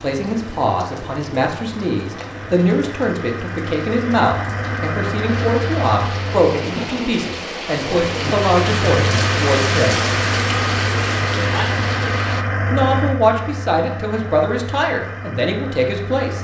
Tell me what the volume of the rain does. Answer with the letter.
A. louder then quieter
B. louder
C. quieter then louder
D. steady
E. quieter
B.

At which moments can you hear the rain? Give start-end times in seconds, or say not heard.
0.0-12.4.